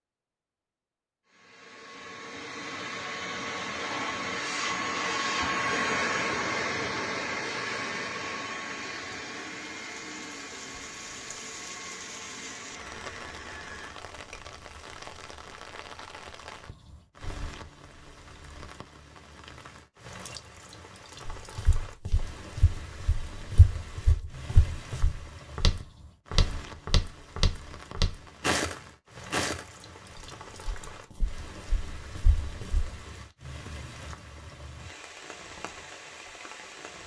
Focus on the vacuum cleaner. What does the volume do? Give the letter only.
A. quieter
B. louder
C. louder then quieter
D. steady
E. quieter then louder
C.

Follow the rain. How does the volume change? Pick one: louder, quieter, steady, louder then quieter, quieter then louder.
steady.